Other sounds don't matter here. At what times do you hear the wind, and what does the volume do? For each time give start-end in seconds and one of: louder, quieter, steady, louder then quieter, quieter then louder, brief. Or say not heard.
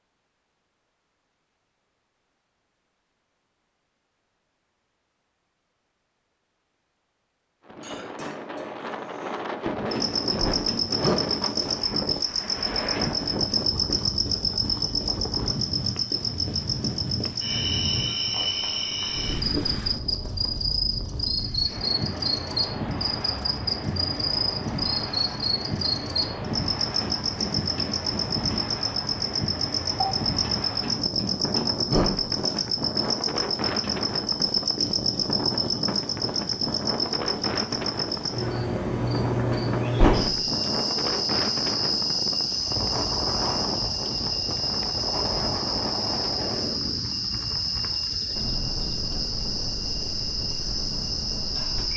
7.7-51.9 steady.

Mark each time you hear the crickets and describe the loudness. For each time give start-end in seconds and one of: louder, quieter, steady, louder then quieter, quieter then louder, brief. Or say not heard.
9.9-51.9 steady.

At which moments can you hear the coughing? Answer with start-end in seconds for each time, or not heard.
7.8-9.4.